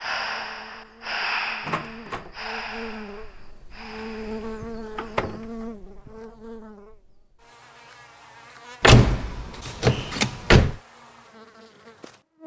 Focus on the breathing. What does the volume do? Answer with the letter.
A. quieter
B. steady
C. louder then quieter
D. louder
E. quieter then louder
A.